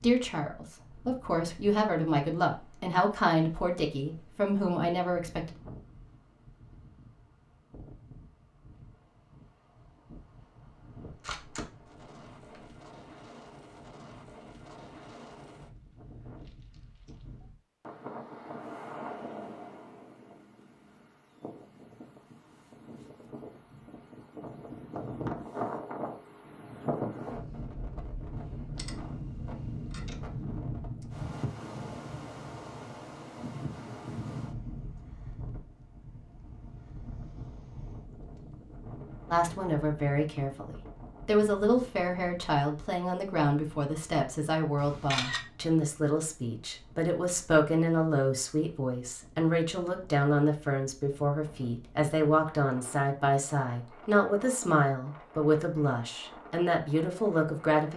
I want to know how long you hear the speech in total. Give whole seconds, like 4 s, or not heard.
24 s.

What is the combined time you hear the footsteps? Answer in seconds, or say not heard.
not heard.